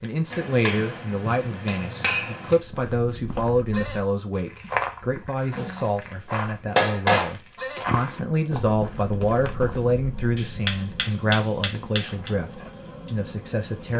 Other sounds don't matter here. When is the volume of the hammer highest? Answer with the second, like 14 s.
7 s.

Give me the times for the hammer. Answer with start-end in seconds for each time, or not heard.
0.3-2.6, 5.5-7.3, 10.3-12.3.